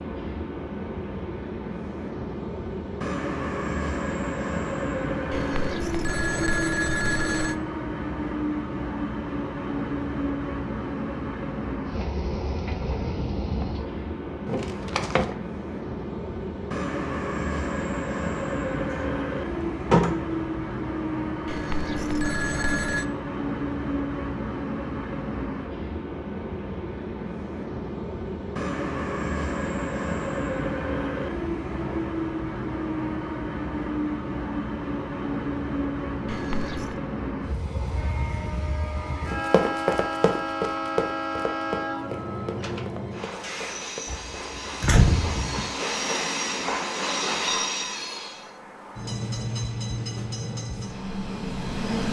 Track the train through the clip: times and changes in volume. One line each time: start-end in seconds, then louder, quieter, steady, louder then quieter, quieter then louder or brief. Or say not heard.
0.0-52.0 steady.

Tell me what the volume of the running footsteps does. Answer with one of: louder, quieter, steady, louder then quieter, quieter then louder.
quieter.